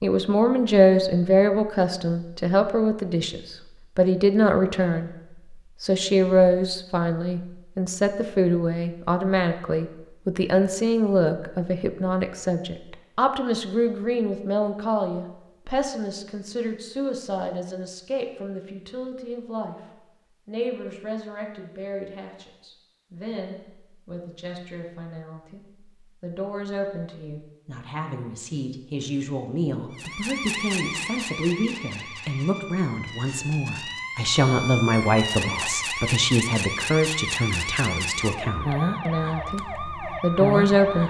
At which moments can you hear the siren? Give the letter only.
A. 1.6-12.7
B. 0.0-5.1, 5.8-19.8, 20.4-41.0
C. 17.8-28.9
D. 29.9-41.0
D.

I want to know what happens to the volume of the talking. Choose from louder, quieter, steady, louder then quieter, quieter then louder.
quieter then louder.